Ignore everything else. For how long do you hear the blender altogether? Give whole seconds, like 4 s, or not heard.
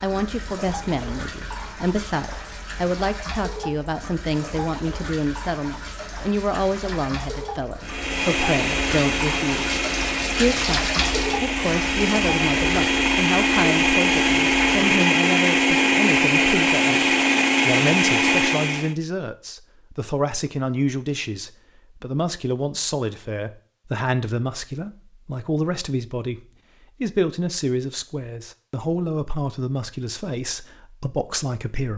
11 s.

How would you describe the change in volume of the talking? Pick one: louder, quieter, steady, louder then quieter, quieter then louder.
steady.